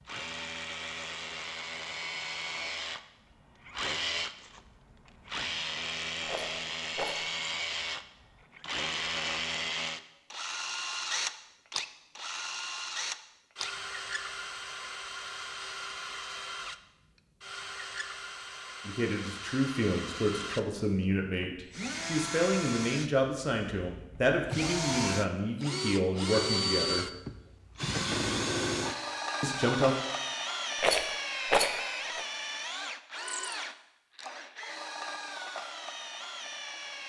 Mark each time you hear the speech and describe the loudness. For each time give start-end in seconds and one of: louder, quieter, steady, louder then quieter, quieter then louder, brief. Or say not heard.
18.9-27.1 steady
29.4-29.9 brief.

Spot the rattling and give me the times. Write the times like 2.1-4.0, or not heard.
6.2-7.2, 30.8-32.2.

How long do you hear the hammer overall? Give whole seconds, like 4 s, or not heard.
not heard.